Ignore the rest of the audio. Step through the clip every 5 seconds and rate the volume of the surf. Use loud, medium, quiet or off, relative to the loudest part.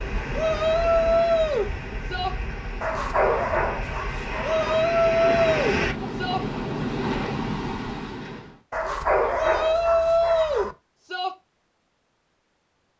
medium, loud, off.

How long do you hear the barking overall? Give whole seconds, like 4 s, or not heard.
4 s.